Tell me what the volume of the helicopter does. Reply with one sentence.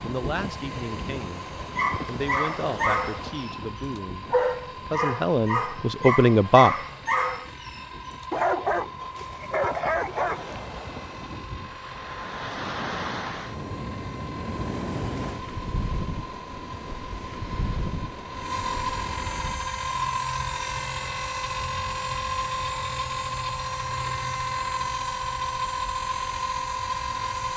The volume of the helicopter goes up.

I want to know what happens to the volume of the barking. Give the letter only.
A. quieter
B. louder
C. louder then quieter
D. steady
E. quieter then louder
D.